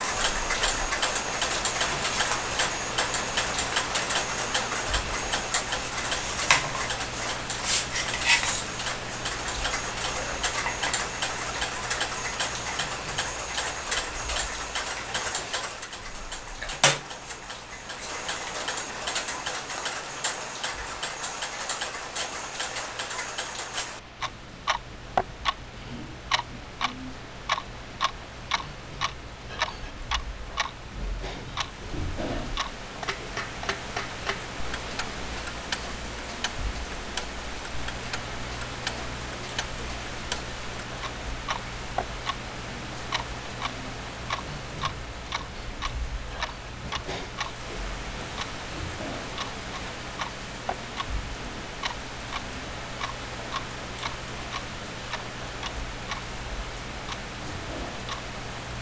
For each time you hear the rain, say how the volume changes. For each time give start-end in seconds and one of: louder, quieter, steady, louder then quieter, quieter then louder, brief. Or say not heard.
0.0-58.7 quieter then louder.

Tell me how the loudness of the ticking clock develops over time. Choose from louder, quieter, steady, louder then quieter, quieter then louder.
quieter.